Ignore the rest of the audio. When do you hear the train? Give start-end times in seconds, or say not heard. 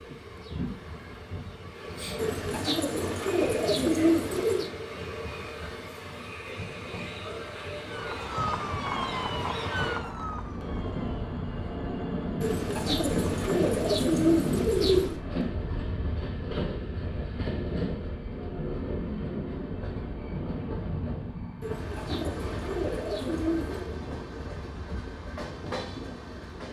0.0-26.6.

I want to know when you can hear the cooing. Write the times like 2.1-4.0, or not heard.
2.1-4.7, 12.4-15.2, 21.6-23.9.